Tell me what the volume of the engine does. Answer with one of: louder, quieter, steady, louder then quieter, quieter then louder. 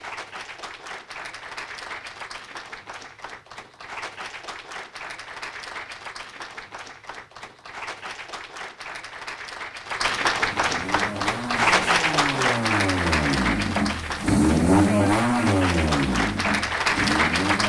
louder then quieter.